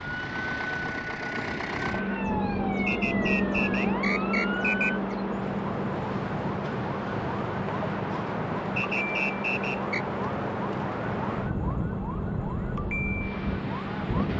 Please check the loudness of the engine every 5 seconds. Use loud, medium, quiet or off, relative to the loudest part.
loud, medium, medium.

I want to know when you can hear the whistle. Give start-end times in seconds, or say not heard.
2.9-5.0, 8.8-10.1.